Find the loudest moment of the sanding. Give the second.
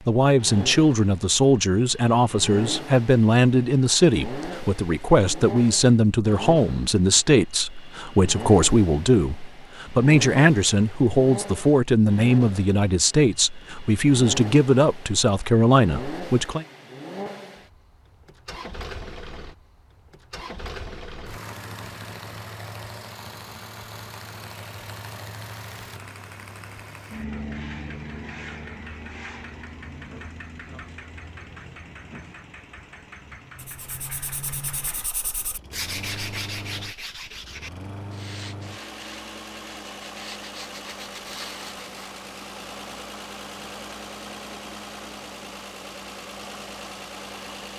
36 s.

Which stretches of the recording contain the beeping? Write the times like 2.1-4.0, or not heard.
not heard.